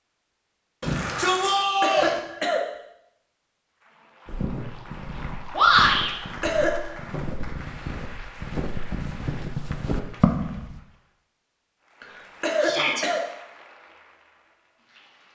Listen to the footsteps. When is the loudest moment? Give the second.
10 s.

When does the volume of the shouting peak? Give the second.
6 s.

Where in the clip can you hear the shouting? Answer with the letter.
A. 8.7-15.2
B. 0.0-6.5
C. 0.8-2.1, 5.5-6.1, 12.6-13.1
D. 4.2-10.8
C.